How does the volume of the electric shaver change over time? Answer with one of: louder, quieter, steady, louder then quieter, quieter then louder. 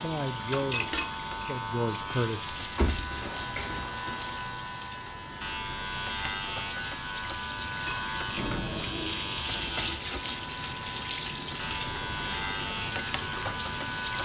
steady.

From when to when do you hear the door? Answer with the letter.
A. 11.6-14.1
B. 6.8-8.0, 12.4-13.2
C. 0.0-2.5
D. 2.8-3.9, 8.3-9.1
D.